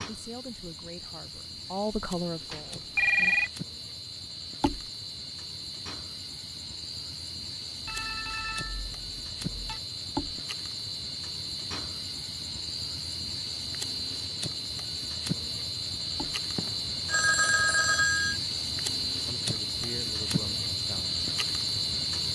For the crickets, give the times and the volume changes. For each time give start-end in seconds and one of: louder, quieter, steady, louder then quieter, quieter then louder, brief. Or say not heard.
0.0-22.3 louder.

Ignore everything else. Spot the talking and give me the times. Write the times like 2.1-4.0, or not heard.
0.0-3.4, 19.2-21.2.